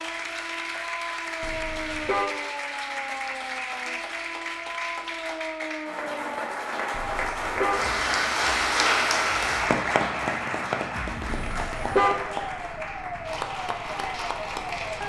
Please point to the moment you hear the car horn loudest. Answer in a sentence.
The loudest moment of the car horn is at 12 seconds.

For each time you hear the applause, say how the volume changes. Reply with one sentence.
You can hear the applause from 0.0 to 15.0 s, getting louder then quieter.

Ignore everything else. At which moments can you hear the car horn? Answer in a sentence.
You can hear the car horn from 1.4 to 2.2 s, from 6.9 to 7.8 s and from 11.3 to 12.1 s.